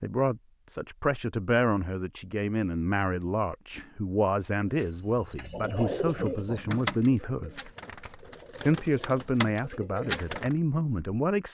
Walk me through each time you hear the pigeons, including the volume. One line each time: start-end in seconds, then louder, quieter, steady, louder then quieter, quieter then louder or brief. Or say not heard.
4.7-10.6 quieter then louder.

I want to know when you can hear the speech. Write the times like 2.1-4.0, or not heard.
0.0-7.7, 8.6-11.4.